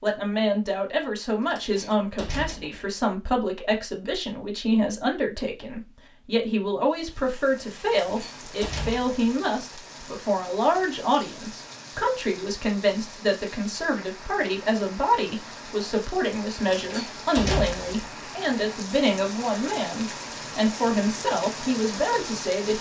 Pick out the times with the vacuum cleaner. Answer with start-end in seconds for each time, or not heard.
not heard.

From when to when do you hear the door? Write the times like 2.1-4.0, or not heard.
1.4-2.9, 7.8-9.2, 16.7-17.9.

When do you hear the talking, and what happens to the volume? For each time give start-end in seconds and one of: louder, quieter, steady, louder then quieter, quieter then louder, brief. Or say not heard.
0.0-22.7 steady.